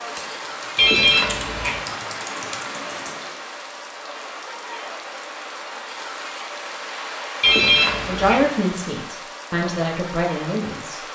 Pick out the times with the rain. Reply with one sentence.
The rain can be heard from 0.0 to 11.1 s.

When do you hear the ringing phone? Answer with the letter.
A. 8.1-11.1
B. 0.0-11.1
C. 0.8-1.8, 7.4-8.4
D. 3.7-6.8
C.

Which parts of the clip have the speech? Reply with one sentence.
You can hear the speech from 8.1 to 11.1 s.